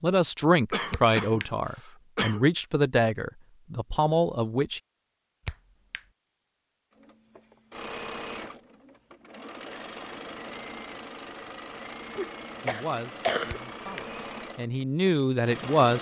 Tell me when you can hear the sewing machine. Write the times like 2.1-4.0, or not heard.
7.0-15.9.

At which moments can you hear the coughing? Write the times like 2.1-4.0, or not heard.
0.7-2.4, 12.2-13.6.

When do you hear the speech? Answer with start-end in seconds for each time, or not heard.
0.0-4.8, 12.6-15.9.